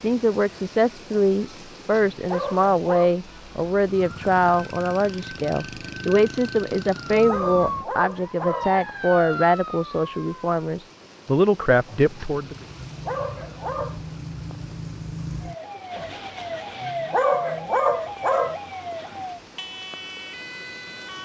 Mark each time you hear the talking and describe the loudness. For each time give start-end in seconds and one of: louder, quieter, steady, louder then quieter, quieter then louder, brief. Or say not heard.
0.0-12.6 steady.